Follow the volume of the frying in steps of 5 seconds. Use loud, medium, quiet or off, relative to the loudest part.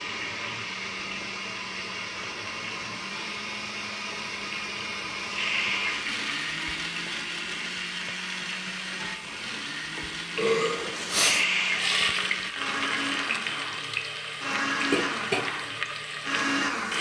medium, medium, loud, loud.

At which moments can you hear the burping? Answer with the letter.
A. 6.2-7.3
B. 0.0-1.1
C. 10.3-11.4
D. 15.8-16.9
C.